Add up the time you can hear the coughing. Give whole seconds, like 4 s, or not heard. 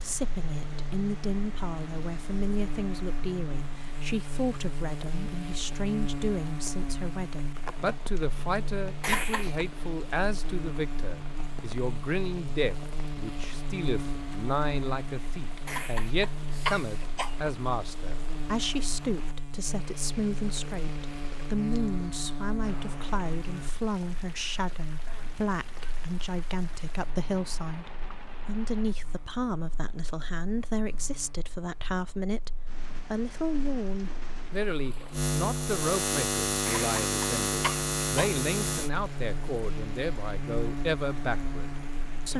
4 s.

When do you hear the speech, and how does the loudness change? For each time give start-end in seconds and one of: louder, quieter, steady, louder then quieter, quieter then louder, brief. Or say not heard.
0.0-42.3 steady.